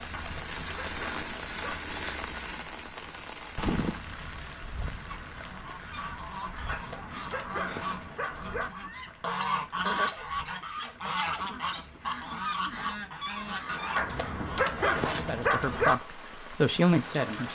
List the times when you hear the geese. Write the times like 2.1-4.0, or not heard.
5.0-14.7.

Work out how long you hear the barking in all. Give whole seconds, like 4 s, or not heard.
6 s.